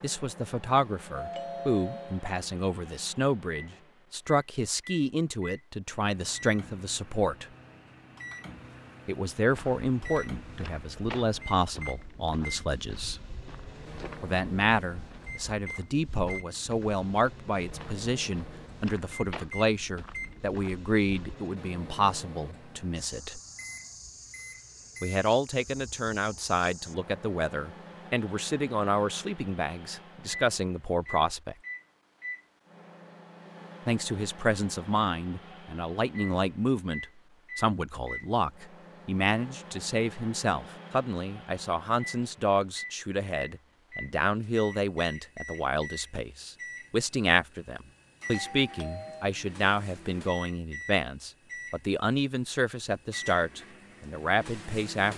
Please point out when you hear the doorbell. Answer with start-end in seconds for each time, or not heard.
1.1-2.3, 48.3-49.3.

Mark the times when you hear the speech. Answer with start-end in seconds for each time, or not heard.
0.0-7.5, 9.1-13.2, 14.2-23.4, 25.0-31.6, 33.9-55.1.